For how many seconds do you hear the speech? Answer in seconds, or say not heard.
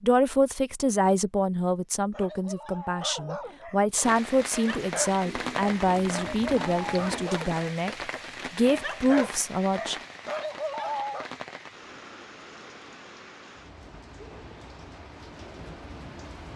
10 s.